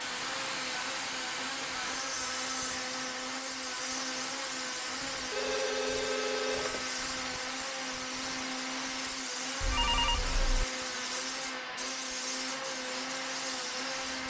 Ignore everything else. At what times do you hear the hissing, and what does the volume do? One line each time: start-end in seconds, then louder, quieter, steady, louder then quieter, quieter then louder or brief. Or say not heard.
0.0-14.2 steady.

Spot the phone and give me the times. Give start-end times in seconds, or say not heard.
1.9-2.7, 5.3-7.0, 9.6-10.7.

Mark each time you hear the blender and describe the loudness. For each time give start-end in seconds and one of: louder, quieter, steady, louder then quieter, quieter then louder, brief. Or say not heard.
0.0-14.2 steady.